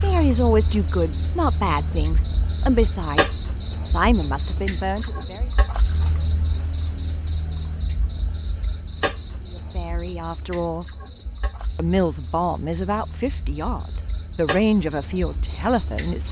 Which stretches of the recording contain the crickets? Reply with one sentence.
You can hear the crickets from 0.0 to 16.2 s.